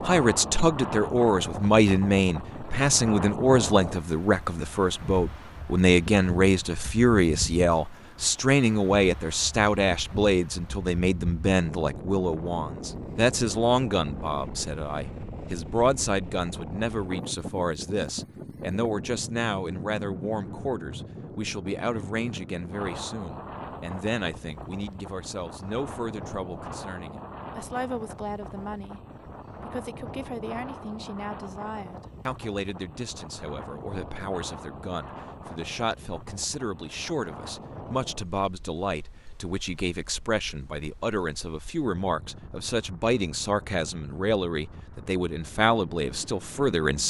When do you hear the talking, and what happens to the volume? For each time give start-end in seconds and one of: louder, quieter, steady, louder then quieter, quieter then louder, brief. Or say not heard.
0.0-29.0 quieter
29.6-47.0 louder.